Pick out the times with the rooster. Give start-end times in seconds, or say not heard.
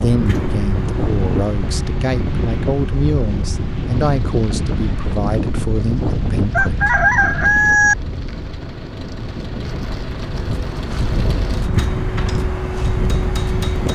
6.5-8.0.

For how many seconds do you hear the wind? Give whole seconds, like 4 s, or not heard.
14 s.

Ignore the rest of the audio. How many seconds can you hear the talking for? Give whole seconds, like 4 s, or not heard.
7 s.